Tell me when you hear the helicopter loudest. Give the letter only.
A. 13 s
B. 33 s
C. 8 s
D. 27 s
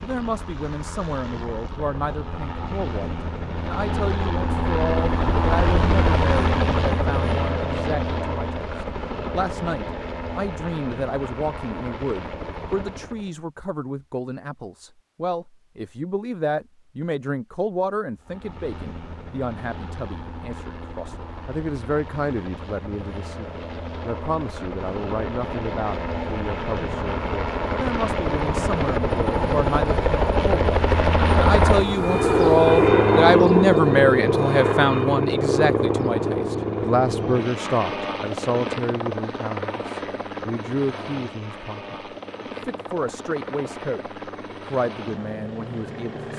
B.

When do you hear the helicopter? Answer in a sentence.
You can hear the helicopter from 0.0 to 13.3 s and from 18.2 to 46.3 s.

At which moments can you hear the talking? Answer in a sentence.
The talking can be heard from 0.0 to 46.3 s.